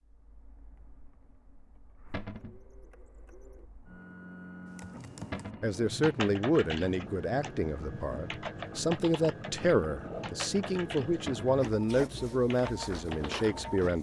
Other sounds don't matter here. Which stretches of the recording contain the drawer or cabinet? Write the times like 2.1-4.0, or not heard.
2.1-2.6, 5.3-5.8, 11.2-11.7.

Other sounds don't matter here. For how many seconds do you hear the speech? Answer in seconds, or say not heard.
8 s.